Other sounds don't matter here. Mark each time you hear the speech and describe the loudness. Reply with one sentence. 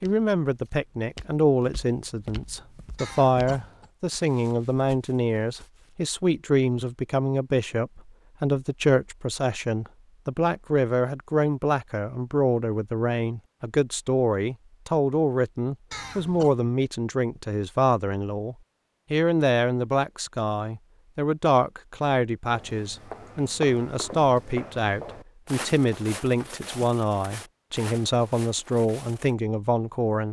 The speech can be heard from 0.0 to 30.2 s, at a steady volume.